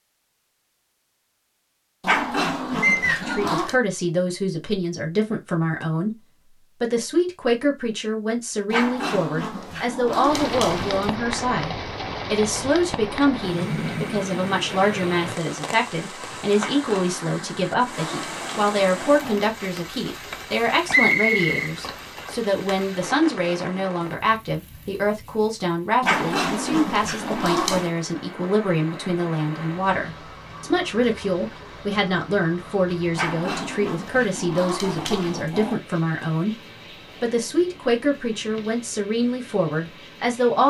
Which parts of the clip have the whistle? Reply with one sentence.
The whistle can be heard from 2.8 to 3.5 s and from 20.9 to 21.8 s.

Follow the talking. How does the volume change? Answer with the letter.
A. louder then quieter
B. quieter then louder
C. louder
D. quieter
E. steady
E.